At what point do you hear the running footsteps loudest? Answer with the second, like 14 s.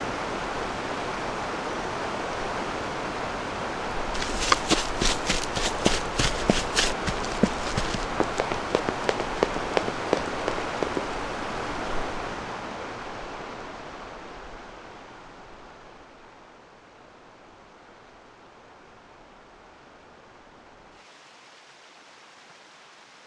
5 s.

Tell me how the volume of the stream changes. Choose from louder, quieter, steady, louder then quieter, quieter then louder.
quieter.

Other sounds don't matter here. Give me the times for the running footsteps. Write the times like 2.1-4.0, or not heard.
4.1-11.2.